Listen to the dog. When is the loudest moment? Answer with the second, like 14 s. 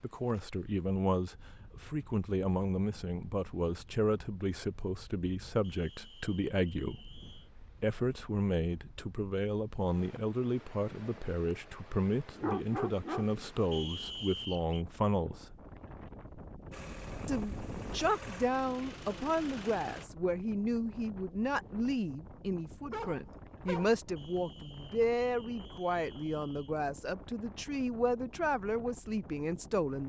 13 s.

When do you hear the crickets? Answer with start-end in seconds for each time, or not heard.
not heard.